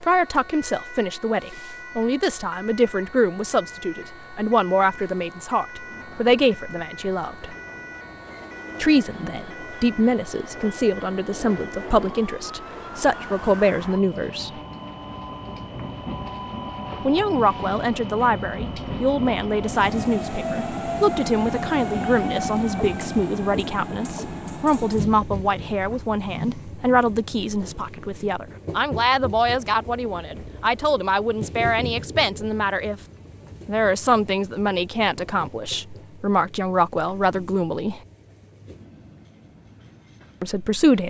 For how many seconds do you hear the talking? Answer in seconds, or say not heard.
34 s.